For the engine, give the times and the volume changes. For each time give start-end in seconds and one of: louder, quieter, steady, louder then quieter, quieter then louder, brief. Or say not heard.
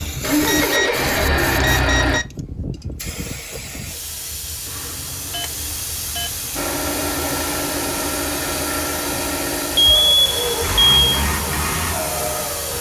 0.0-2.2 brief
6.5-12.7 steady.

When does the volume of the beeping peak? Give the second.
11 s.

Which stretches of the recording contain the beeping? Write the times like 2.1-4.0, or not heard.
0.3-2.2, 4.7-6.5, 9.8-11.2.